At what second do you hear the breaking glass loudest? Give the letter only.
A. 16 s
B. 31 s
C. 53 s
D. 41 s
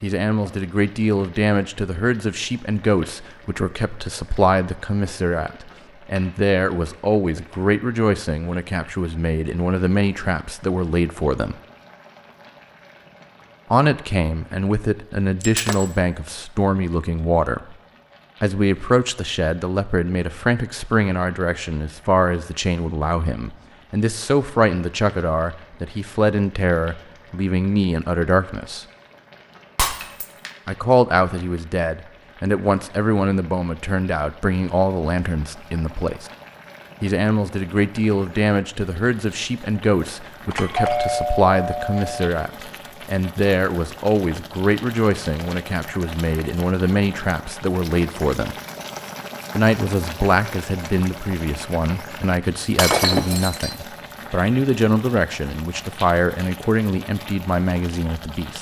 C.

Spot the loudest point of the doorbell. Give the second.
41 s.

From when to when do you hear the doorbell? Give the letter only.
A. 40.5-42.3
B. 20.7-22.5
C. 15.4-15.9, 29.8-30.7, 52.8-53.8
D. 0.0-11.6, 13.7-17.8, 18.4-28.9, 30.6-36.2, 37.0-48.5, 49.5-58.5
A.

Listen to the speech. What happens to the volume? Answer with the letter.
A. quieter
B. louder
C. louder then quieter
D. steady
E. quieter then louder
D.